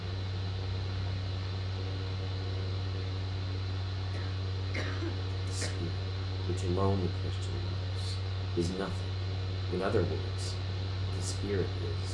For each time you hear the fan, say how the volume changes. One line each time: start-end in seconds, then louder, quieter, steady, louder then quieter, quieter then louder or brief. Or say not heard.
0.0-12.1 steady.